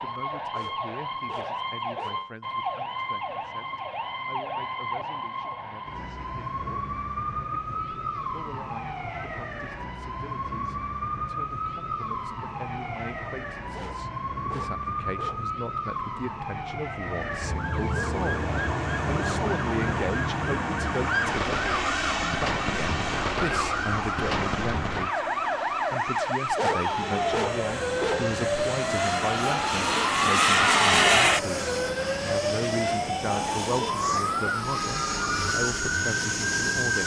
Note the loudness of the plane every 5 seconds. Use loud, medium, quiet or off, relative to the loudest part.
off, off, off, medium, medium, medium, loud, medium.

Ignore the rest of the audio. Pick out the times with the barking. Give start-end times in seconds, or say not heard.
0.5-2.2, 13.7-15.5, 26.6-28.3.